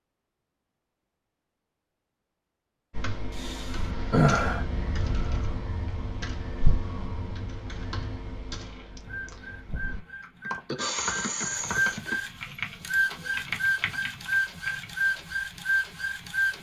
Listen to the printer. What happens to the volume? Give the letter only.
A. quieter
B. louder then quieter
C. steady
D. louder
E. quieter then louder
D.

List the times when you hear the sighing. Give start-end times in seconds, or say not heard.
3.4-4.7, 10.7-12.0.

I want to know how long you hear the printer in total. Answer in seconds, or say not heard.
8 s.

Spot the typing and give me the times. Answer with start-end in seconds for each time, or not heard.
2.9-14.8.